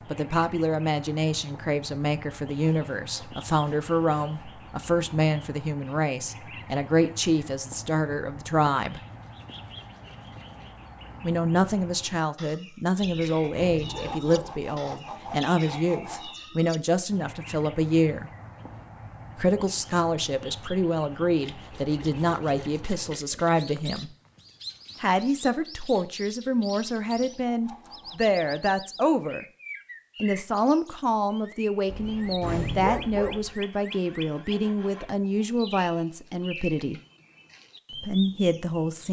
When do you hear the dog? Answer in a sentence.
The dog can be heard from 13.0 to 14.7 s and from 31.9 to 33.5 s.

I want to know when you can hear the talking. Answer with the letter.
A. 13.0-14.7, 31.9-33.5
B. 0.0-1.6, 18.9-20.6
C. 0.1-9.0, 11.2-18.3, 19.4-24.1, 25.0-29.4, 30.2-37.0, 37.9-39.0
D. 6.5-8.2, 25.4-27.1
C.